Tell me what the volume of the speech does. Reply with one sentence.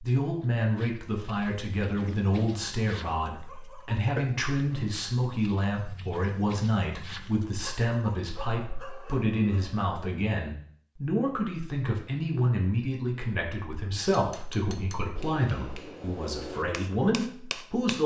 The volume of the speech stays about the same.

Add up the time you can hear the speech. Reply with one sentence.
You can hear the speech for 18 seconds altogether.